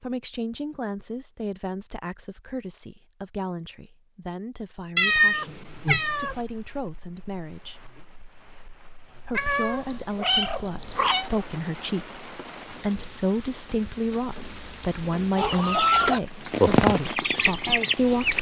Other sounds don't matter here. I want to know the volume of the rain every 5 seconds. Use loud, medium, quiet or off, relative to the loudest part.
off, quiet, quiet, loud.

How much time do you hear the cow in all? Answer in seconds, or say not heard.
not heard.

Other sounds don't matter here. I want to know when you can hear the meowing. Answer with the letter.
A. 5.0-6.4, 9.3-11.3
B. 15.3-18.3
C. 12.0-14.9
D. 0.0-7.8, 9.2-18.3
A.